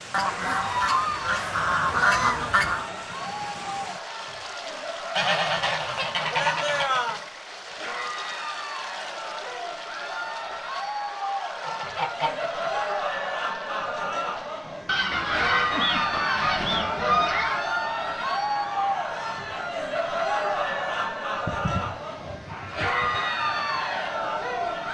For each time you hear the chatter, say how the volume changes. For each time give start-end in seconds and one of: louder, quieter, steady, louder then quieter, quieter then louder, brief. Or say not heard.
0.1-24.8 louder.